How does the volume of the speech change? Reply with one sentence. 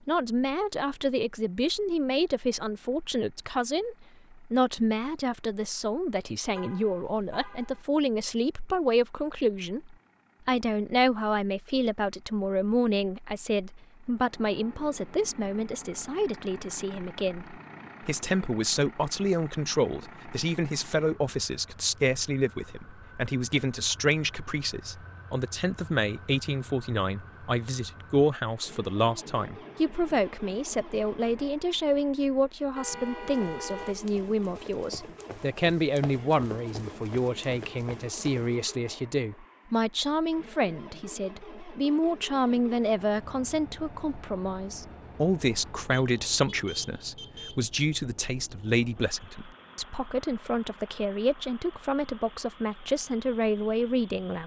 The volume of the speech stays about the same.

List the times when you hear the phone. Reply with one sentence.
You can't hear the phone here.